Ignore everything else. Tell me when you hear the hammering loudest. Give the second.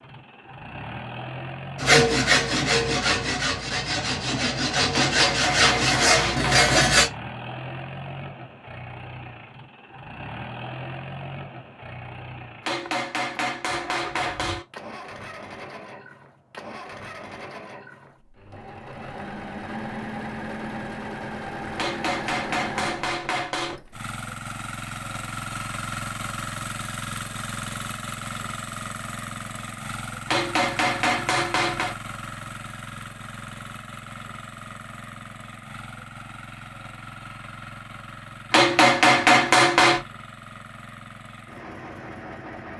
39 s.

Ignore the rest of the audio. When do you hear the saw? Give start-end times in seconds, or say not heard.
1.8-7.1.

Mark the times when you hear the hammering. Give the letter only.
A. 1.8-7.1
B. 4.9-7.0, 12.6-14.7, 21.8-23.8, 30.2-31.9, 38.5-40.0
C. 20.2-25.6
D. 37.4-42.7
B.